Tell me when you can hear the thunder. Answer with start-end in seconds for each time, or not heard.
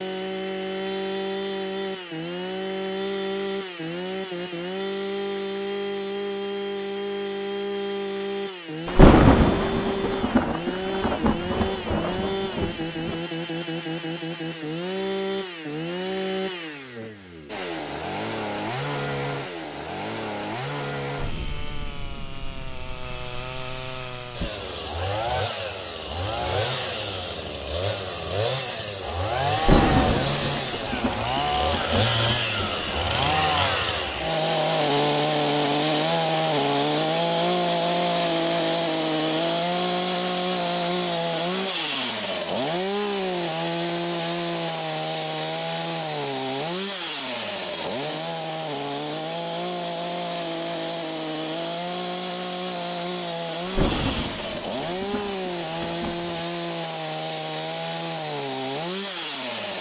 8.8-13.2, 29.6-33.1, 53.6-56.4.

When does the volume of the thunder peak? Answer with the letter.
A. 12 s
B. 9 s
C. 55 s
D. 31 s
B.